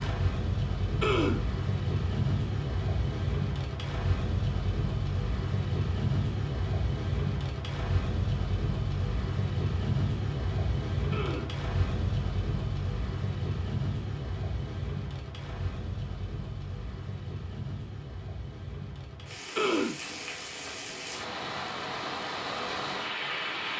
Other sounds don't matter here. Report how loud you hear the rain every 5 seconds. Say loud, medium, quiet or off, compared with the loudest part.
loud, loud, loud, medium, loud.